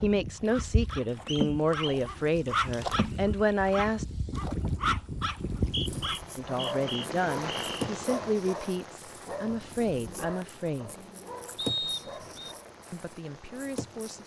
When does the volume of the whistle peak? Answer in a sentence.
The loudest moment of the whistle is at 12 seconds.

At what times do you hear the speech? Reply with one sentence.
You can hear the speech from 0.0 to 4.0 s, from 6.3 to 11.1 s and from 12.9 to 14.2 s.